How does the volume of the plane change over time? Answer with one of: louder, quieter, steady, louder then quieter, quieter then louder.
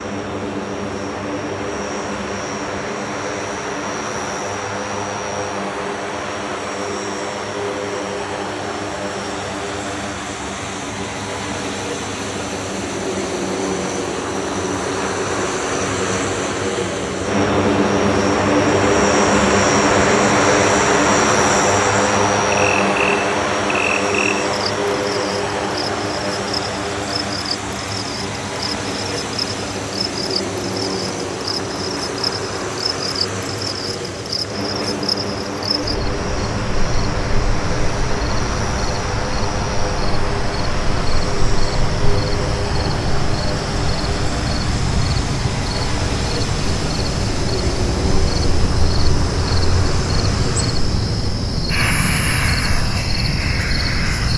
louder then quieter.